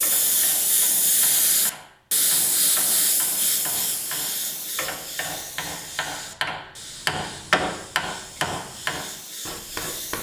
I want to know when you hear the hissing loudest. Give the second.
1 s.